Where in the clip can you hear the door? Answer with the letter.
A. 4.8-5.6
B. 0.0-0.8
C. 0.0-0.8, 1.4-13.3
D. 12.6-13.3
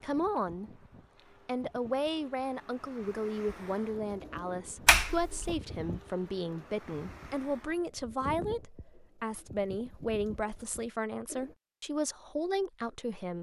A.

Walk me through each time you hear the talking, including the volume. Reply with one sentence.
The talking can be heard briefly from 0.0 to 0.8 s; and from 1.4 to 13.3 s, at a steady volume.